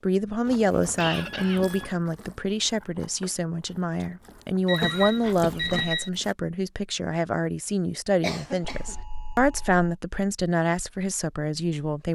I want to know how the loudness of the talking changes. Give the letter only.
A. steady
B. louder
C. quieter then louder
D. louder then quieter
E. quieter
A.